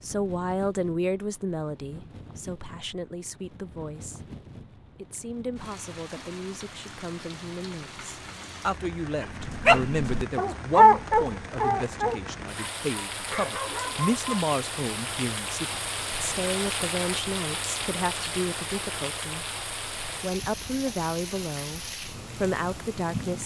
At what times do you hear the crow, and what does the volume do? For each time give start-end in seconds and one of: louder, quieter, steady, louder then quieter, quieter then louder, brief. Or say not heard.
not heard.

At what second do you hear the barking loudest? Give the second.
11 s.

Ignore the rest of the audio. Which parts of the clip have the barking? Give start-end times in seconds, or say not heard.
9.2-14.5.